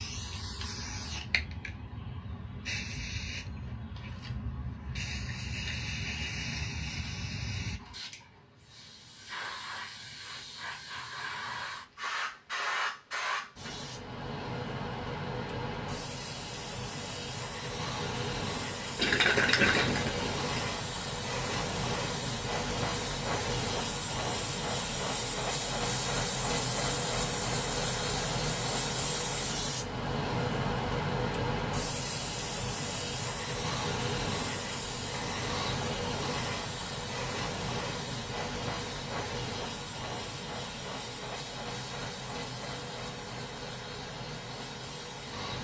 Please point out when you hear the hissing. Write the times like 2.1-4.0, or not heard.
0.0-45.5.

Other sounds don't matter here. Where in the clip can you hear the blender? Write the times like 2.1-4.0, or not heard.
not heard.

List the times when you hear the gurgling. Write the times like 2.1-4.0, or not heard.
18.9-20.6.